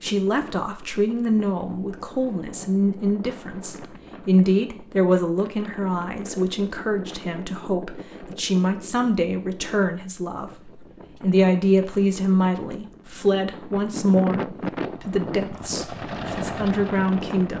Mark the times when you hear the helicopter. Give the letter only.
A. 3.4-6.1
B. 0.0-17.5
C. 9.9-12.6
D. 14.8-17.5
D.